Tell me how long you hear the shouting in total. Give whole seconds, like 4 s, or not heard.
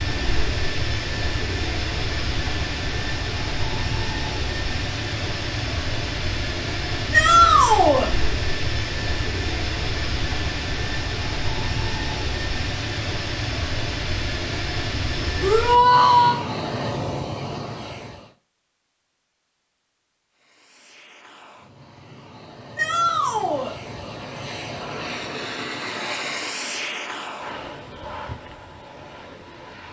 3 s.